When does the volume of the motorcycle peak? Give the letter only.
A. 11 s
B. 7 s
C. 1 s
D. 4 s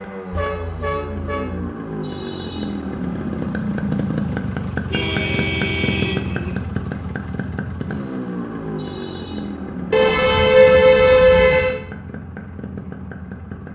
D.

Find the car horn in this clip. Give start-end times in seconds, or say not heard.
0.3-1.7, 4.9-6.5, 9.9-11.8.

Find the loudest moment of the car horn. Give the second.
11 s.